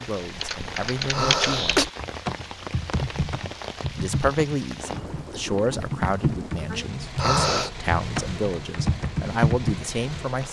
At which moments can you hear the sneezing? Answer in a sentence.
The sneezing can be heard from 1.1 to 1.9 s and from 7.2 to 7.7 s.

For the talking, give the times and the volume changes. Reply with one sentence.
You can hear the talking briefly from 0.1 to 1.8 s; and from 4.0 to 10.4 s, getting quieter then louder.